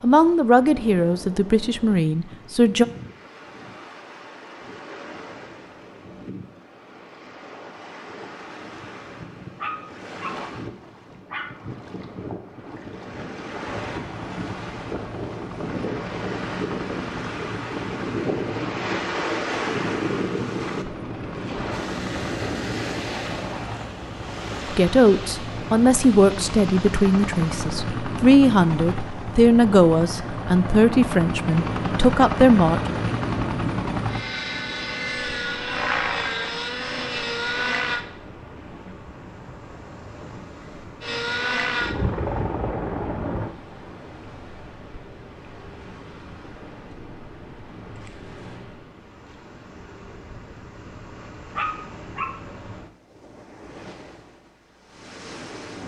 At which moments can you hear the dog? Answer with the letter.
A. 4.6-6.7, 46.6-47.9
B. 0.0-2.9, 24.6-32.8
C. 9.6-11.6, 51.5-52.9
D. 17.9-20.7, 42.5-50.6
C.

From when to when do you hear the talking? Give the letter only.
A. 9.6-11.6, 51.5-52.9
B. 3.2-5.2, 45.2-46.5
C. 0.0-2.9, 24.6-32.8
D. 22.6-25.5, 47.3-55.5
C.